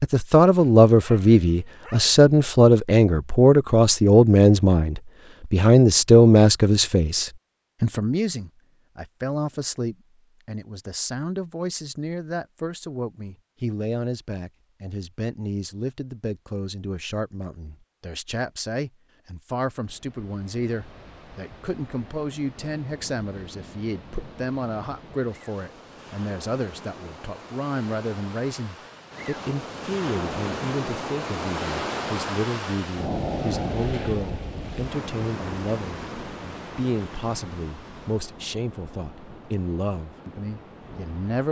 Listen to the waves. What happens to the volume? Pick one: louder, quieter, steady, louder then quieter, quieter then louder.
louder then quieter.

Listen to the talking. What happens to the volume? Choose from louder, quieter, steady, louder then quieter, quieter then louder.
quieter.